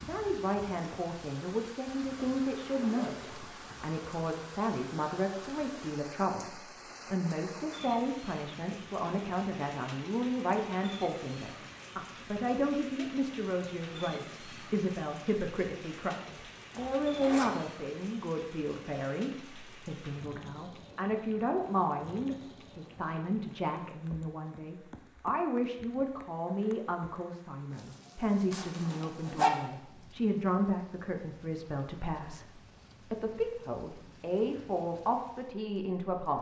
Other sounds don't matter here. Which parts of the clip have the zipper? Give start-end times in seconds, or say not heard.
2.0-3.5, 16.7-17.6, 28.5-29.5.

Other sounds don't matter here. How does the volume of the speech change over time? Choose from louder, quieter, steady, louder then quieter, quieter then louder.
steady.